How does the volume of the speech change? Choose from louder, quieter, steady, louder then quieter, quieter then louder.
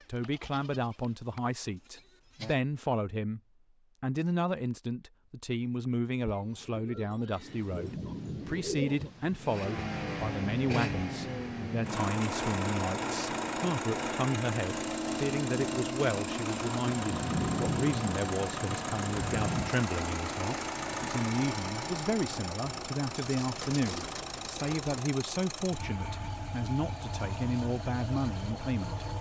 steady.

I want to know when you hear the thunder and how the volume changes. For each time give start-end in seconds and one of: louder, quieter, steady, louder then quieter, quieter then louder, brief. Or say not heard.
7.5-11.9 quieter then louder
16.9-19.8 brief.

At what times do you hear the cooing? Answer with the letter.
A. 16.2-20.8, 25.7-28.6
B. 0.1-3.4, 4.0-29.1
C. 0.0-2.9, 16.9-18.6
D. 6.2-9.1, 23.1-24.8
D.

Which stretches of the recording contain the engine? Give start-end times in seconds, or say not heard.
9.4-29.1.